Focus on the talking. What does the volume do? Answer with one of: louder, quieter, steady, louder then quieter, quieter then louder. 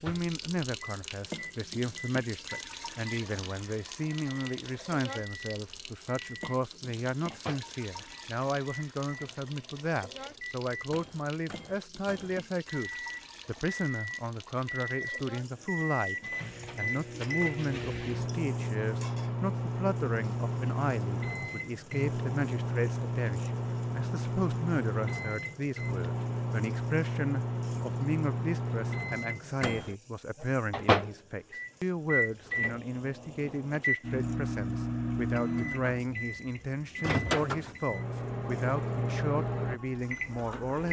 steady.